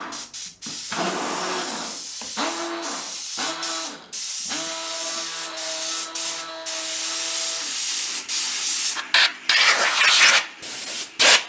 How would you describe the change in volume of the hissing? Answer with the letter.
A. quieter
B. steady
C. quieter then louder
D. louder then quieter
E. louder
E.